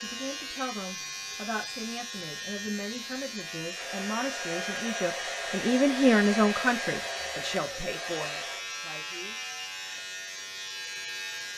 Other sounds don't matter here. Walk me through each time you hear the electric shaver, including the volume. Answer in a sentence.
The electric shaver can be heard from 0.0 to 11.5 s, at a steady volume.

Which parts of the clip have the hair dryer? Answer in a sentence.
The hair dryer can be heard from 3.7 to 8.7 s.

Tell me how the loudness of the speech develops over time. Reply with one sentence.
The volume of the speech goes up, then down.